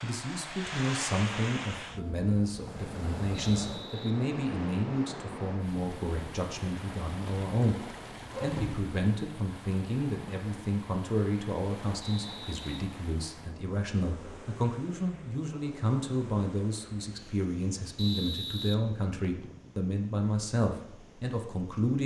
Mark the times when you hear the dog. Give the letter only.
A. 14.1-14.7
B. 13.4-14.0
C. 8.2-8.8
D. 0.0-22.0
C.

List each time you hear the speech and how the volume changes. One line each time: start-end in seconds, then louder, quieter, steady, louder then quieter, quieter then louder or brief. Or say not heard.
0.0-22.0 steady.